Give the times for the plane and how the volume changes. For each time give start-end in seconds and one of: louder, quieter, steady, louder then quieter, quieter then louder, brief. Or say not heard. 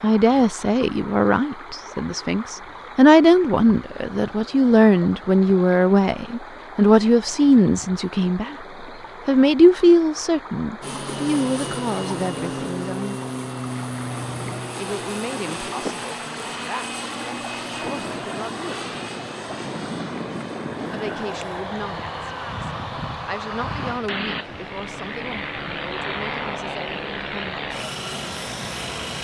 10.8-29.1 steady.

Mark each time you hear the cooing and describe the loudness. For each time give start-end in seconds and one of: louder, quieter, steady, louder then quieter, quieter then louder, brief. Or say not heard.
not heard.